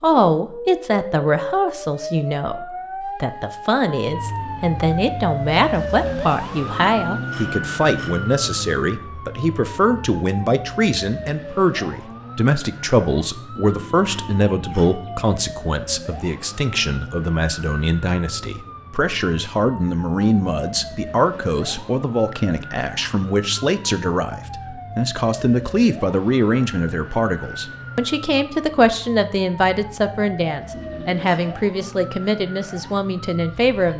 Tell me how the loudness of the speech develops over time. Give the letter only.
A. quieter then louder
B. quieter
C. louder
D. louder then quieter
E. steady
E.